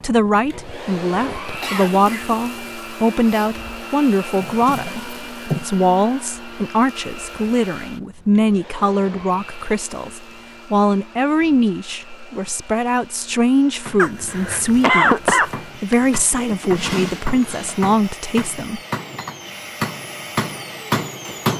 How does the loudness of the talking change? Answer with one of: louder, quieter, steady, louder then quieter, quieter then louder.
steady.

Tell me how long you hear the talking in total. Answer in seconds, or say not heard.
19 s.